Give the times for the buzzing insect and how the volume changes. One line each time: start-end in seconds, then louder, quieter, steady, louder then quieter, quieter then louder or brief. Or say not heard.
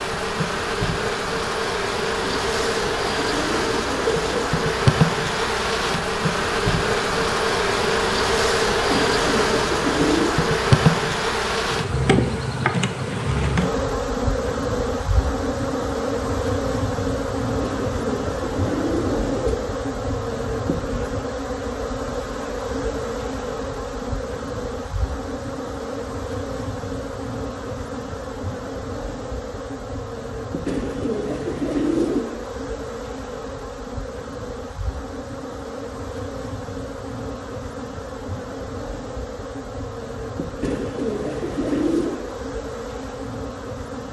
0.0-44.0 quieter.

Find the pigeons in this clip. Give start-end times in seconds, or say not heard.
2.2-4.7, 8.9-10.4, 17.6-19.6, 30.6-32.2, 40.6-42.2.